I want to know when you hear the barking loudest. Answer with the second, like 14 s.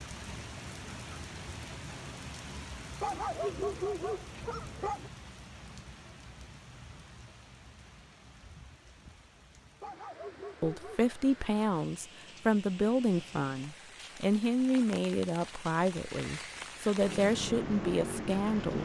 4 s.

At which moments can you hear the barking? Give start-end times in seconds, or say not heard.
3.0-5.1, 9.8-11.2.